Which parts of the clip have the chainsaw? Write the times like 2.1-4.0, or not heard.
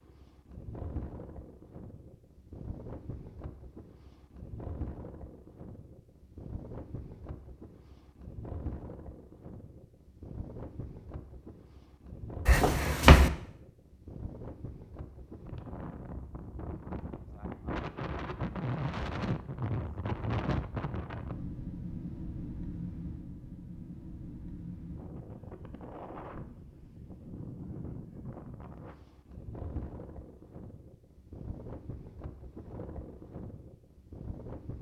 not heard.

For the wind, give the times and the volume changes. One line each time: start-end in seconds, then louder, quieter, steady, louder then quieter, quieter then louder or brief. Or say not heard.
0.0-34.7 louder then quieter.